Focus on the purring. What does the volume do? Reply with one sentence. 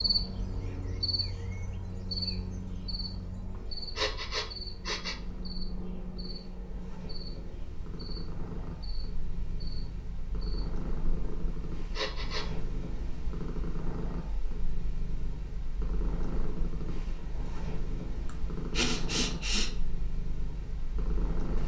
The volume of the purring goes up.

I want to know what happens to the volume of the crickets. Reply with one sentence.
The volume of the crickets goes down.